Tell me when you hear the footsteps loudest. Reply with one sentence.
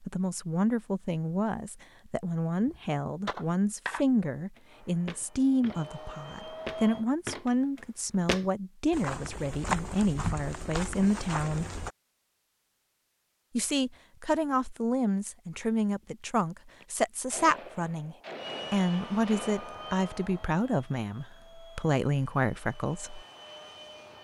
The volume of the footsteps peaks at 10 seconds.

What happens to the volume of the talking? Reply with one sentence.
The volume of the talking stays about the same.